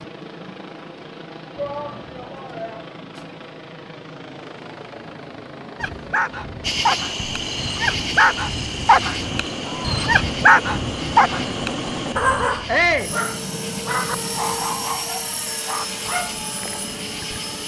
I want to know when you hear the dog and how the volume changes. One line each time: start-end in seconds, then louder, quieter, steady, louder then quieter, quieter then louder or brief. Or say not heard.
5.8-16.4 louder then quieter.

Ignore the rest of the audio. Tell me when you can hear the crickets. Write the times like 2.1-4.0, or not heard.
6.6-17.6.